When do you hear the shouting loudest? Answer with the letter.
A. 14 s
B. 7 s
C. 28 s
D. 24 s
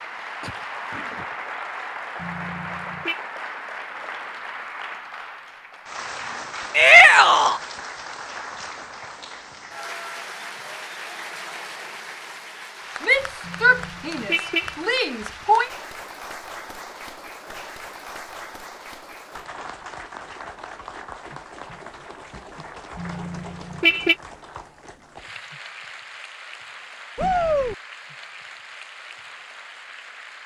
B.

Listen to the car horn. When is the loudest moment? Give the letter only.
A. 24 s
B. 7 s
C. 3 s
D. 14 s
A.